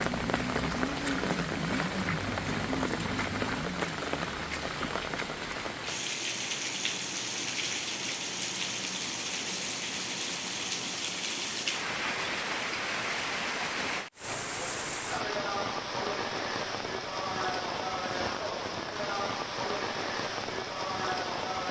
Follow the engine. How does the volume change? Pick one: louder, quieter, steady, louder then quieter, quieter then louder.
steady.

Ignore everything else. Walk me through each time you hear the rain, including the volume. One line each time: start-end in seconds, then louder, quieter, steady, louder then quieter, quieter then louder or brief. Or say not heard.
0.0-21.6 steady.